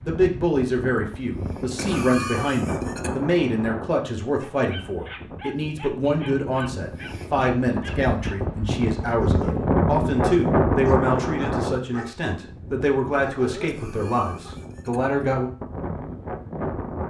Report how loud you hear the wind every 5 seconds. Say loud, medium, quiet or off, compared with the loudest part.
medium, loud, loud, medium.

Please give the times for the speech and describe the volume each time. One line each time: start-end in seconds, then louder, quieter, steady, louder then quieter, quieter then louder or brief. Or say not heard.
0.0-15.5 steady.